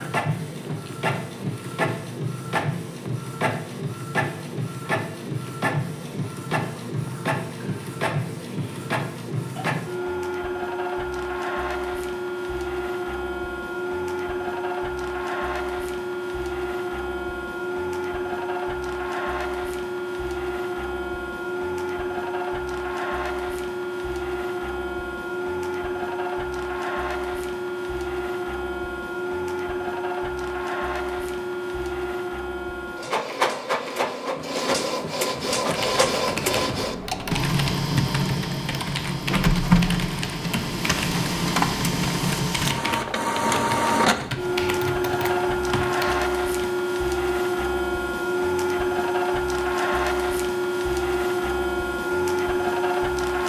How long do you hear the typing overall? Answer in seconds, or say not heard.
11 s.